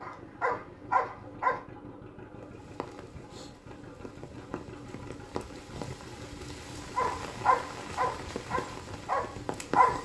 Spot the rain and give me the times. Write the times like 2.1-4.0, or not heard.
2.4-9.9.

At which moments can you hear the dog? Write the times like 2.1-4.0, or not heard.
0.0-1.6, 7.0-9.9.